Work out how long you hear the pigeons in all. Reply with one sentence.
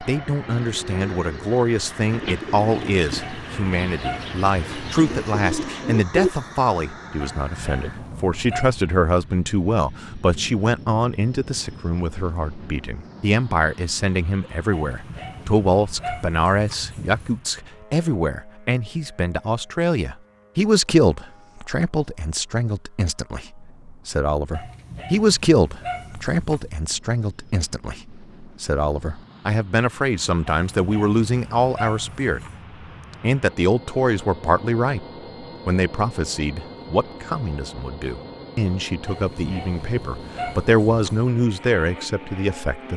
The pigeons can be heard for 6 seconds in total.